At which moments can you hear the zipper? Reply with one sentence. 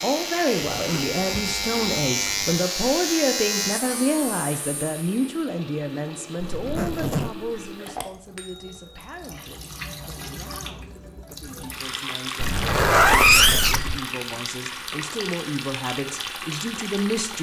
The zipper can be heard from 0.7 to 2.6 s, from 6.4 to 7.5 s and from 12.3 to 14.0 s.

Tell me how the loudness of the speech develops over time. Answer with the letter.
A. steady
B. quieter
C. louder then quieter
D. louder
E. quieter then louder
E.